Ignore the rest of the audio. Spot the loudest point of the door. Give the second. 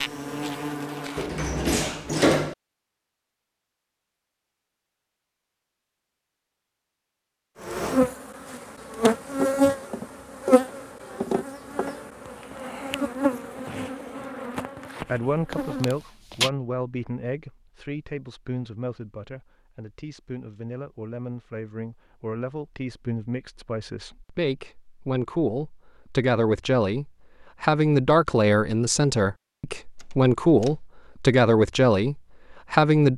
2 s.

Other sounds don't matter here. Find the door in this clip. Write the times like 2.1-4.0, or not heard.
1.1-2.5, 15.5-16.5, 30.0-30.8.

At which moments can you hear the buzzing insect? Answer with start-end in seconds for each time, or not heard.
0.0-2.2, 7.6-15.9.